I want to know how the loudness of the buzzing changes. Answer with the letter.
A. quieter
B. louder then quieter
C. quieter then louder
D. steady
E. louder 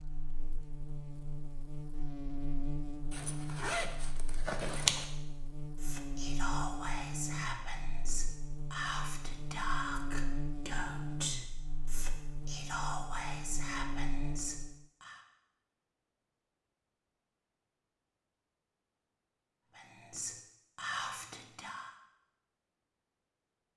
D.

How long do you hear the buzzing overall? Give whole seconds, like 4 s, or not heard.
15 s.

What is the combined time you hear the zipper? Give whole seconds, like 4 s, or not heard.
2 s.